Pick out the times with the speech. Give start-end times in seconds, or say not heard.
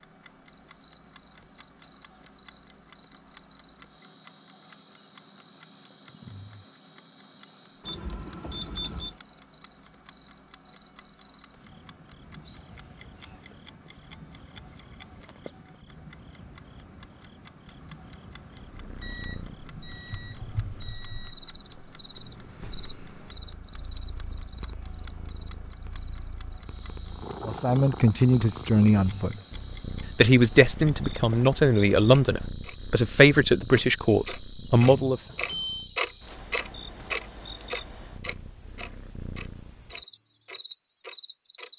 27.4-29.4, 30.1-35.2.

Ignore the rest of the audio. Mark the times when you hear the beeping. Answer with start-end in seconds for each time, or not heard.
7.8-9.2, 19.0-21.4, 34.9-35.9.